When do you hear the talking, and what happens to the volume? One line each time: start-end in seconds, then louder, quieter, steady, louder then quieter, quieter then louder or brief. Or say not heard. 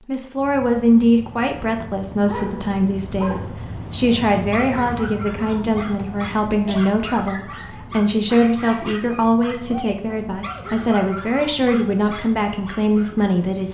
0.1-13.6 steady.